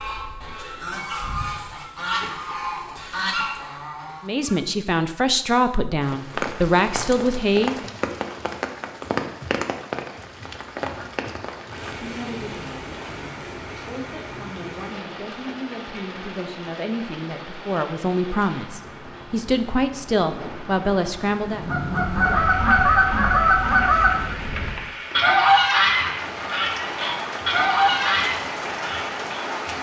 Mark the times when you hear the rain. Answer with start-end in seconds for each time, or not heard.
6.0-29.7.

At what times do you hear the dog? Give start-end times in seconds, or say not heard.
not heard.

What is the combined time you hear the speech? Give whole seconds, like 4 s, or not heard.
13 s.